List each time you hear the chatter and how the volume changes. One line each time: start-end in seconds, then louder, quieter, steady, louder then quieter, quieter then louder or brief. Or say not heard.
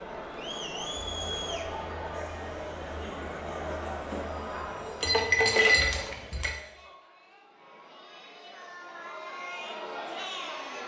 0.0-10.8 quieter then louder.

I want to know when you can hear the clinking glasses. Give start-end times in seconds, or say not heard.
5.0-6.5.